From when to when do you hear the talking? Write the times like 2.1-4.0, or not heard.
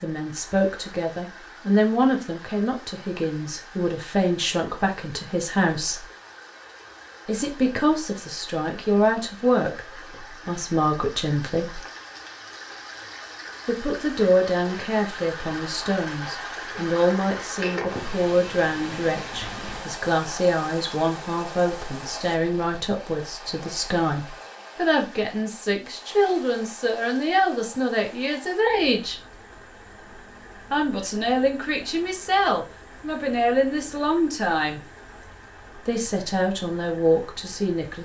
0.0-6.0, 7.2-11.8, 13.7-29.1, 30.7-34.8, 35.9-38.0.